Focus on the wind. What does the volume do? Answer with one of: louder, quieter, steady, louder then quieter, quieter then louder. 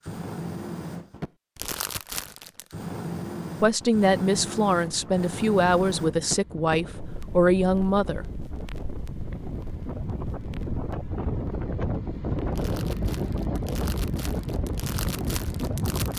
louder.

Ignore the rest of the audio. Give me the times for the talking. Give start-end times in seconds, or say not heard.
3.6-8.2.